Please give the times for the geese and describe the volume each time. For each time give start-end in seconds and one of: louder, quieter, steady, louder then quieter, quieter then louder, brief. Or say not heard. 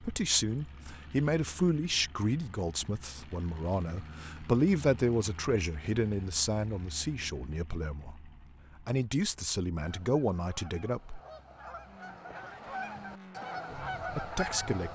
9.8-14.9 louder.